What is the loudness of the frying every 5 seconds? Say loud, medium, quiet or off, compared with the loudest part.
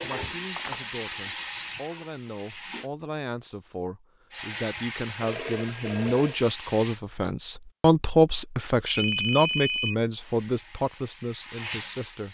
loud, medium, medium.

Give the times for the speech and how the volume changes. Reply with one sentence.
You can hear the speech from 0.0 to 12.3 s, getting louder then quieter.